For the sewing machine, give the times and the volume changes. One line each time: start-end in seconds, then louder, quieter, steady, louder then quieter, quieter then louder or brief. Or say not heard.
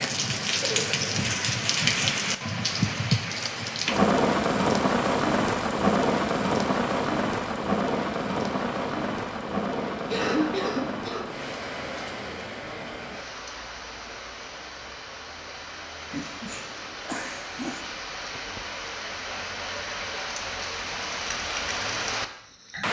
not heard.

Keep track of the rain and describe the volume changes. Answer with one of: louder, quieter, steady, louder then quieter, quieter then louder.
quieter then louder.